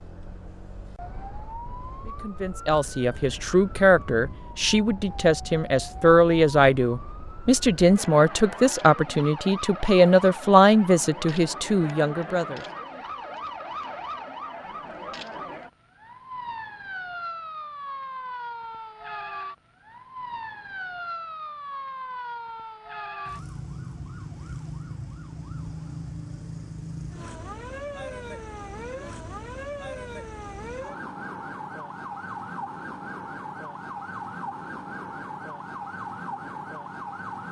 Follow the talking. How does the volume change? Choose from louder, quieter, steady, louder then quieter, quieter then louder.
steady.